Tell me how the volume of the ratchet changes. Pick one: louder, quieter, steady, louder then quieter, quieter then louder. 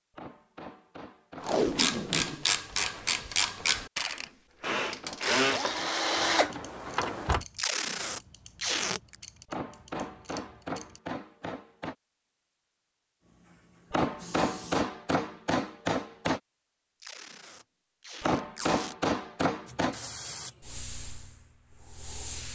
quieter.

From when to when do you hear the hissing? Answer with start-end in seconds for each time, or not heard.
13.2-14.8, 19.6-22.4.